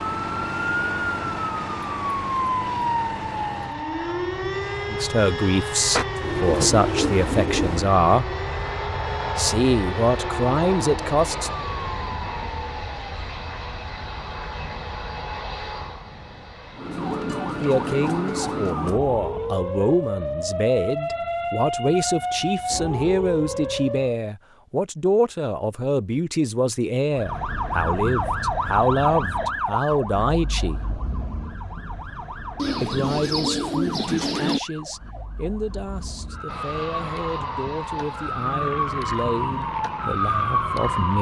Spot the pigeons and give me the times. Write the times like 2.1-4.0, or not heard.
5.9-7.9, 32.5-34.6.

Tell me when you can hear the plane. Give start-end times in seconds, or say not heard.
0.0-18.8, 36.5-41.1.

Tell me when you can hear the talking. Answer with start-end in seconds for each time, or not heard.
4.9-8.2, 9.3-11.5, 17.6-30.8, 32.8-41.1.